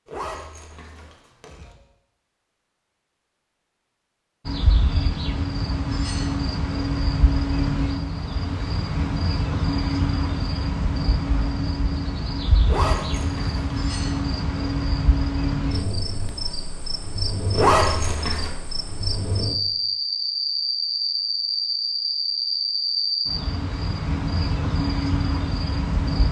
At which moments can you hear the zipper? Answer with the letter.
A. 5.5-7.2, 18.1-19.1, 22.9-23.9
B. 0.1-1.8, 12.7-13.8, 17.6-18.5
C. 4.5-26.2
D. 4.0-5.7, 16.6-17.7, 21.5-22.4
B.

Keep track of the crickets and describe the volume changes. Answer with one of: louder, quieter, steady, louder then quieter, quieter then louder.
steady.